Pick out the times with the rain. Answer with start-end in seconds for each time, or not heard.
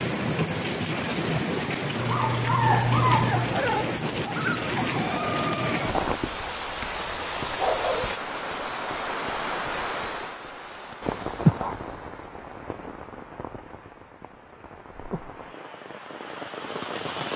0.0-17.3.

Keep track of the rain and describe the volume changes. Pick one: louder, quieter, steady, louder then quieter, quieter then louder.
quieter.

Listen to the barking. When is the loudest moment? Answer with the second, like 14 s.
3 s.